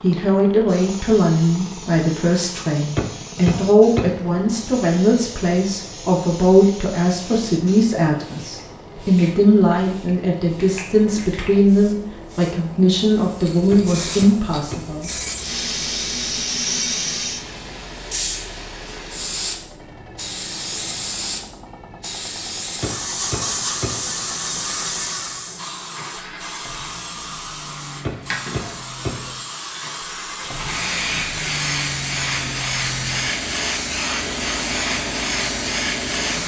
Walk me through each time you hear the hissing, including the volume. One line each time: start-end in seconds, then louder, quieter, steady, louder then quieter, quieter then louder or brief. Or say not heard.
0.0-36.4 louder.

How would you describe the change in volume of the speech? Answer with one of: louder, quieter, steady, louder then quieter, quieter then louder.
steady.